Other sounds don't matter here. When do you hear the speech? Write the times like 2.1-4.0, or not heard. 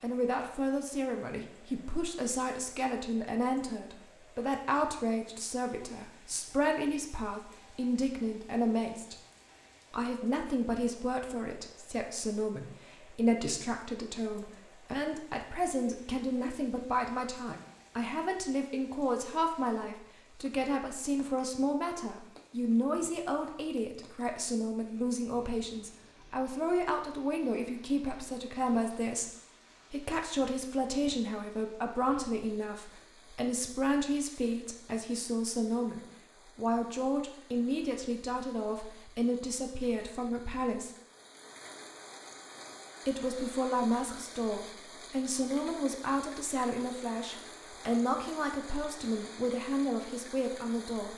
0.0-9.2, 9.9-29.3, 29.9-40.9, 43.0-51.1.